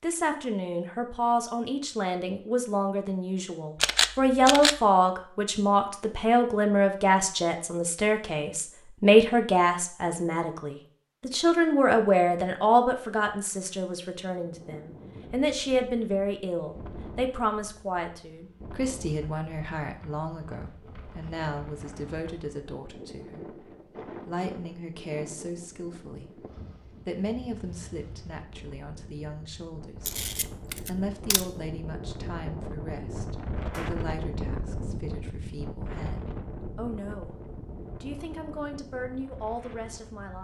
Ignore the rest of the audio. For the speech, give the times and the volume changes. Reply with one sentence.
You can hear the speech from 0.0 to 37.3 s, getting quieter; and briefly from 38.0 to 40.3 s.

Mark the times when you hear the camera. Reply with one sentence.
The camera can be heard from 3.8 to 4.8 s and from 30.1 to 31.4 s.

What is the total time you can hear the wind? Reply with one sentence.
The wind can be heard for 26 seconds in total.